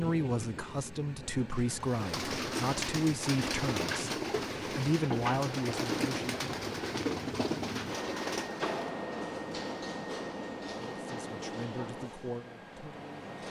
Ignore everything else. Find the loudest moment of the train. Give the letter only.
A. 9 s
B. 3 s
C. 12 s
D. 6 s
A.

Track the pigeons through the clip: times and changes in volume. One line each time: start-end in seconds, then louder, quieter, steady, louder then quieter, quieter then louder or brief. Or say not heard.
1.6-8.7 steady.